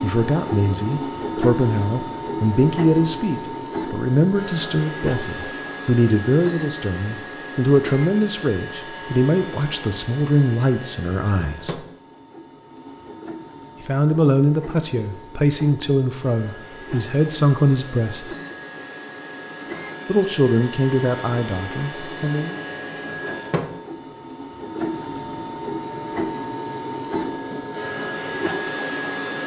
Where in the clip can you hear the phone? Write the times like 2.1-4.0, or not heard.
not heard.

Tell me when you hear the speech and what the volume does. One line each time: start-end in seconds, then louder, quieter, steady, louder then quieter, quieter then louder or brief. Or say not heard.
0.0-11.8 steady
13.8-18.3 quieter then louder
20.1-22.6 brief.